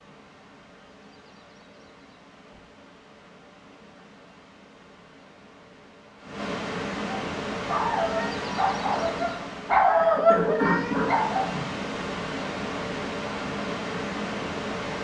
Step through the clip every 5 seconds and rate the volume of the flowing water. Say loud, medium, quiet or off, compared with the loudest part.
quiet, loud, loud.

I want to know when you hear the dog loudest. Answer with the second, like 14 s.
10 s.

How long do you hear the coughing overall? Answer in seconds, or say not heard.
2 s.